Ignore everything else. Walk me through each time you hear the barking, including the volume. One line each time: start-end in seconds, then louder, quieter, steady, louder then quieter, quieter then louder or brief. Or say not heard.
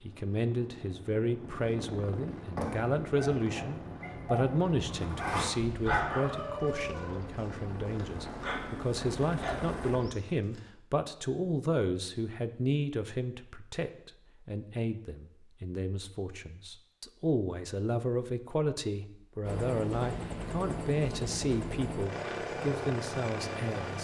2.4-10.7 louder then quieter.